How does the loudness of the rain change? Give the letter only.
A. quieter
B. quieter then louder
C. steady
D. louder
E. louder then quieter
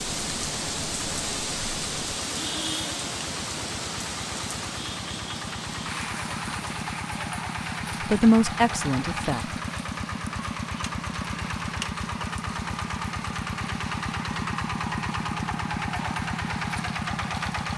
A.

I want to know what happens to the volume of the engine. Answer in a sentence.
The loudness of the engine goes up.